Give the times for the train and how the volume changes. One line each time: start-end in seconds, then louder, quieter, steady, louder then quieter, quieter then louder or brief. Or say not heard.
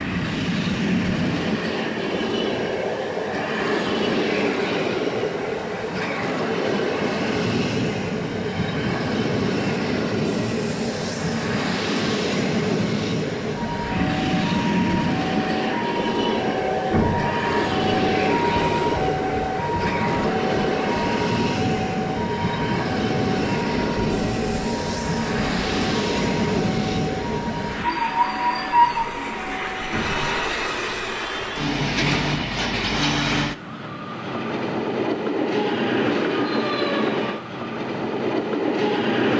0.0-39.3 steady.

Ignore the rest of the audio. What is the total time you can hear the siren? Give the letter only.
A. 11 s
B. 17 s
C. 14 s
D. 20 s
B.